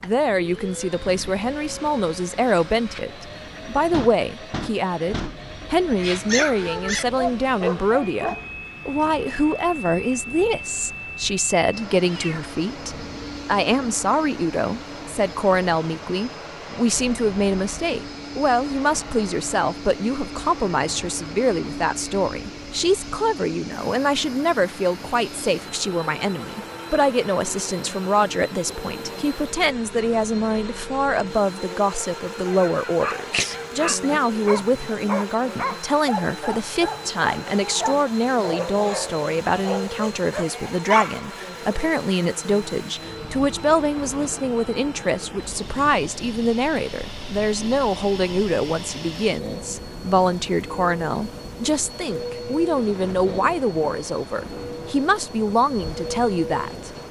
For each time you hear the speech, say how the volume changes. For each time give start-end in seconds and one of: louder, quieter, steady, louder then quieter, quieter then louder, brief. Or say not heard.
0.0-57.0 steady.